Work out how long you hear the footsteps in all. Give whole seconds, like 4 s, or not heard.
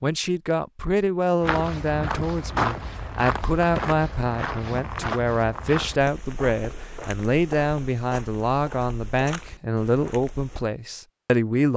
9 s.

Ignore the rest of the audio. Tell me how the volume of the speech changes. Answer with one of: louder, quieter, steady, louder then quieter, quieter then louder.
steady.